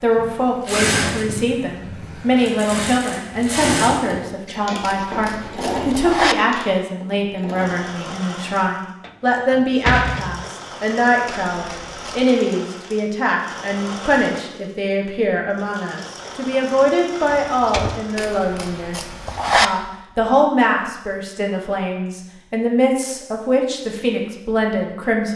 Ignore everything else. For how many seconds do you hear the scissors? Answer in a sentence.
The scissors can be heard for 4 seconds in total.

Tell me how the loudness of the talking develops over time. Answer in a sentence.
The volume of the talking stays about the same.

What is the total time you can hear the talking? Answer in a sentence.
The talking can be heard for 25 seconds in total.